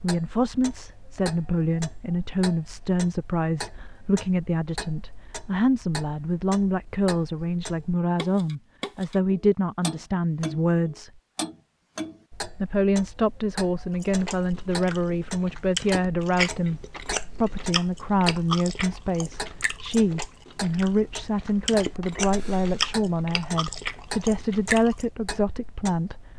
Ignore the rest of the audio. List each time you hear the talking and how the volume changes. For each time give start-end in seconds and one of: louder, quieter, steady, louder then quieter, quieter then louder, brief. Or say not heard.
0.0-11.1 steady
12.6-26.2 steady.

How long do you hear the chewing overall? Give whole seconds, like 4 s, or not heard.
11 s.